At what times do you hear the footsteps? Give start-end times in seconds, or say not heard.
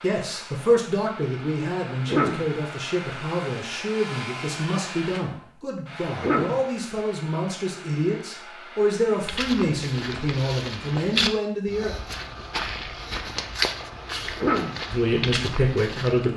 9.2-16.3.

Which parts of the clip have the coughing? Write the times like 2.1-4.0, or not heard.
1.9-2.5, 6.0-6.6, 14.2-14.8.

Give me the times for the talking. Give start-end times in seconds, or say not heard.
0.0-11.9, 14.8-16.3.